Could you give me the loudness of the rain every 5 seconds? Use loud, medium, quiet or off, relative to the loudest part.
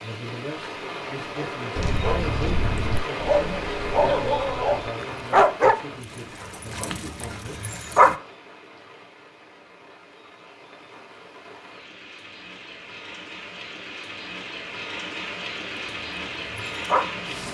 loud, medium, medium, loud.